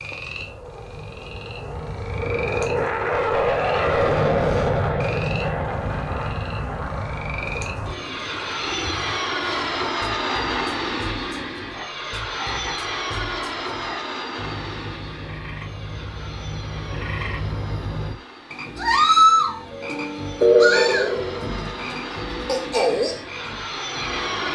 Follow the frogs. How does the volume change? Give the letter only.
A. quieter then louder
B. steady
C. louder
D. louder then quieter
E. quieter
C.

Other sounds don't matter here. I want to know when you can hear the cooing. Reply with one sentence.
The cooing can be heard from 7.4 to 9.1 s.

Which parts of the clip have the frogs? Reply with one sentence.
The frogs can be heard from 0.0 to 24.5 s.